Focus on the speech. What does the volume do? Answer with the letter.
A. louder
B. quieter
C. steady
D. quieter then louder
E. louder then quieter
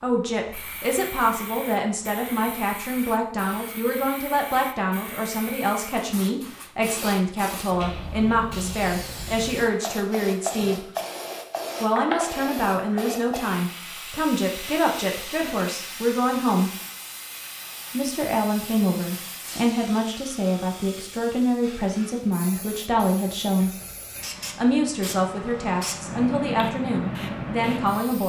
C.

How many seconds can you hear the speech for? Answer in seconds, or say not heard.
25 s.